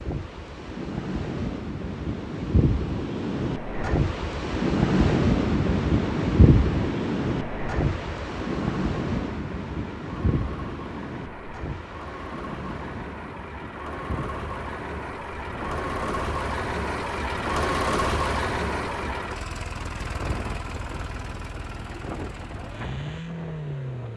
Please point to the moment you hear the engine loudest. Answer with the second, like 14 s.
18 s.